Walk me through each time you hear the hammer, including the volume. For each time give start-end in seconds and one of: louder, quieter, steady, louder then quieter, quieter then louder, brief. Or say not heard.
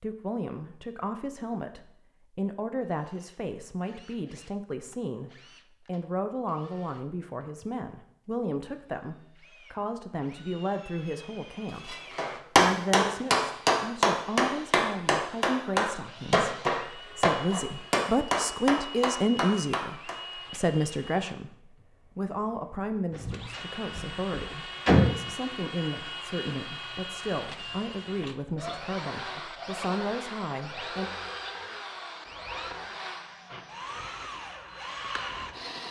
11.8-20.1 quieter.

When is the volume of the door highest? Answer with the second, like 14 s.
25 s.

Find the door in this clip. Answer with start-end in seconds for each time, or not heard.
23.1-25.1.